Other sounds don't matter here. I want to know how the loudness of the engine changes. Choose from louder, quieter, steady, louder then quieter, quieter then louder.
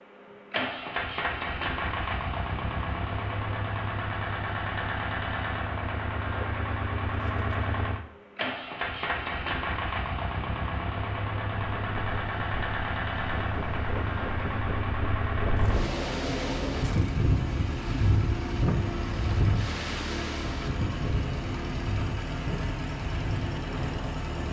steady.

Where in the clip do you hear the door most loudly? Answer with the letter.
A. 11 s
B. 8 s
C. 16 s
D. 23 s
C.